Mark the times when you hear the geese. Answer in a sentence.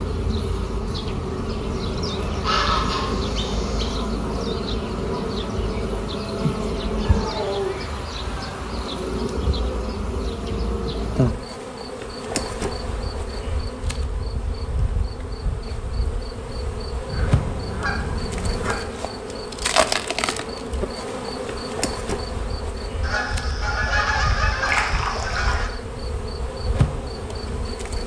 The geese can be heard from 2.0 to 4.0 s, from 7.0 to 8.7 s, from 17.1 to 18.8 s and from 23.0 to 25.7 s.